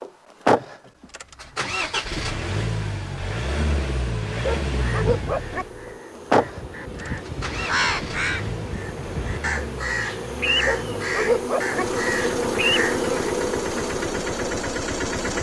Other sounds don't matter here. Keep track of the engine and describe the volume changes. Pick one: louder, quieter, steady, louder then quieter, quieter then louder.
quieter then louder.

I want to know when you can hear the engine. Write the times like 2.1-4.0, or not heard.
0.0-15.3.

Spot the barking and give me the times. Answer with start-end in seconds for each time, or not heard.
4.4-5.7, 10.7-11.8.